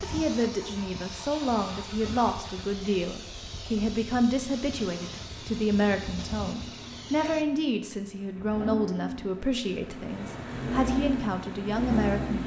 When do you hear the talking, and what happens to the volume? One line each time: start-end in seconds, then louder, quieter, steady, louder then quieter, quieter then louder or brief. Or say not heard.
0.0-12.4 steady.